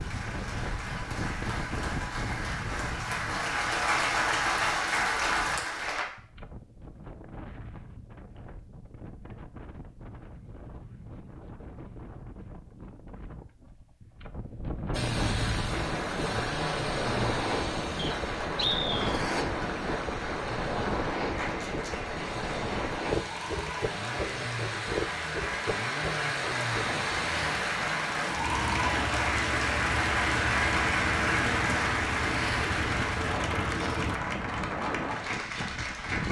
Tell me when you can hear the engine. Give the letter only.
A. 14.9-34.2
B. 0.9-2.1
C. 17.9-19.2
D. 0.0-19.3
A.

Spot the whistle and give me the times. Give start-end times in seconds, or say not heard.
17.9-19.2.